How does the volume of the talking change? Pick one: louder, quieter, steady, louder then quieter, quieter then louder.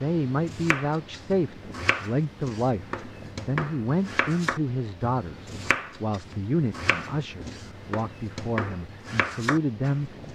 steady.